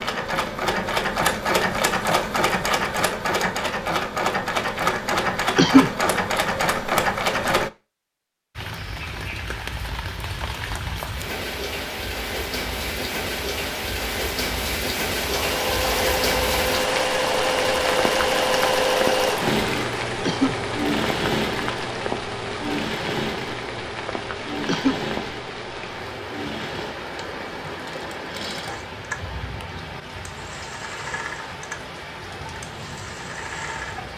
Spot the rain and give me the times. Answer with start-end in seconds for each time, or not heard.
8.6-34.1.